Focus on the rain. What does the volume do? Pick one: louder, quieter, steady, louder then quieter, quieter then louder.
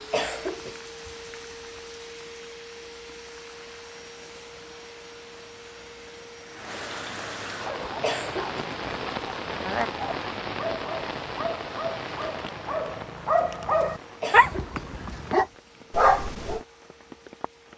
louder then quieter.